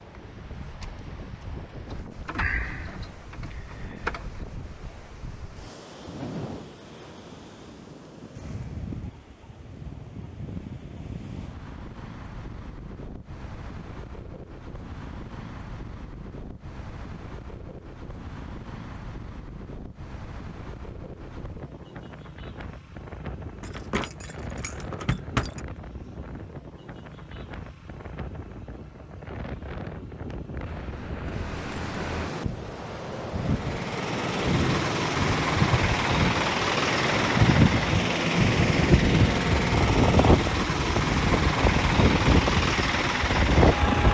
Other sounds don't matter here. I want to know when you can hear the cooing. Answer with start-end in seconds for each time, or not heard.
not heard.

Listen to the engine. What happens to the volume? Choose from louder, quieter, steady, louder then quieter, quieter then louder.
steady.